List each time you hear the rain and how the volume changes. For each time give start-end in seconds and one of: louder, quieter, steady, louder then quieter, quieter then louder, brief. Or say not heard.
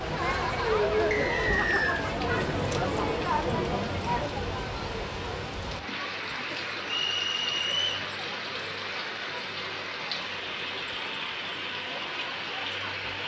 0.0-13.2 steady.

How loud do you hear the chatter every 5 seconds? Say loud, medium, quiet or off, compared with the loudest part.
loud, quiet, quiet.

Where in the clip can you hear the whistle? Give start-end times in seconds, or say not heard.
1.1-2.0, 6.8-8.1.